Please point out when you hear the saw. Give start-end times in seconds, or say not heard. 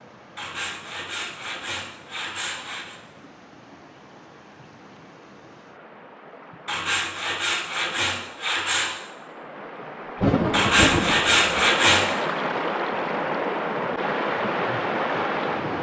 0.3-3.0, 6.7-8.9, 10.5-12.1.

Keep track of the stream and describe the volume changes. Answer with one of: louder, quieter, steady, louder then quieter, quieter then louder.
louder.